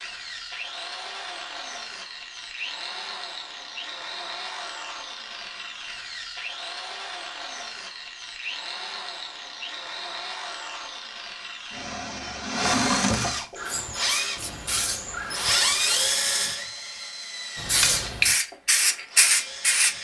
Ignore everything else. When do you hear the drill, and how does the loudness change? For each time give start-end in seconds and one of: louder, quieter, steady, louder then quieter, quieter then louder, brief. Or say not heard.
0.0-19.9 louder.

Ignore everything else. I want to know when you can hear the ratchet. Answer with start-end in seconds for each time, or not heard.
not heard.